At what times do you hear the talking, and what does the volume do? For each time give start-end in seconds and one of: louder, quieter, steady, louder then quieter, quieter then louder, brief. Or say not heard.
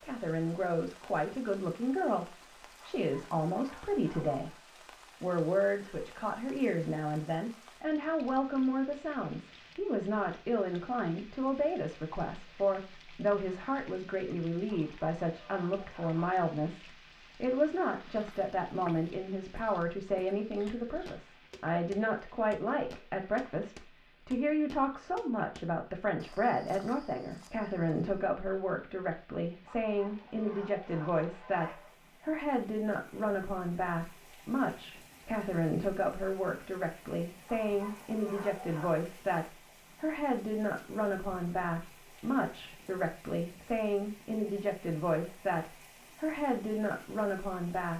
0.0-4.5 steady
5.2-47.9 steady.